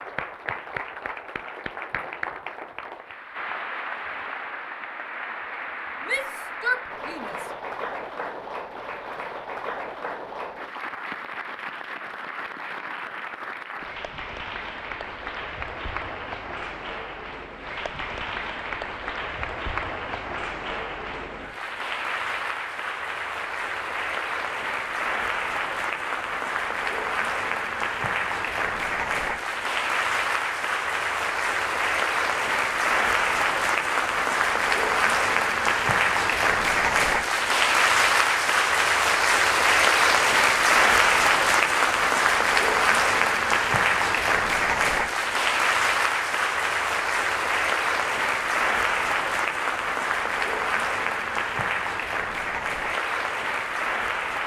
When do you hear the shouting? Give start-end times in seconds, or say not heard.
6.0-7.5.